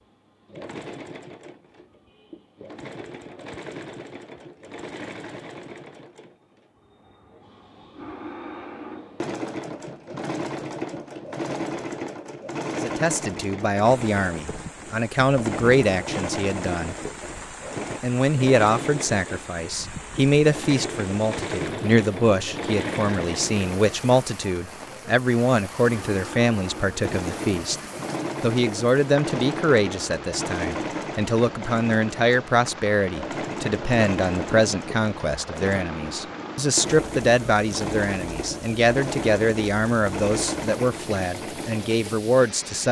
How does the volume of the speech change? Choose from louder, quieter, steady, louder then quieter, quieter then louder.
steady.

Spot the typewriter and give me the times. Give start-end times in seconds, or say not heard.
not heard.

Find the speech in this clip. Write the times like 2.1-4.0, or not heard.
12.7-16.9, 18.0-27.8, 28.4-42.8.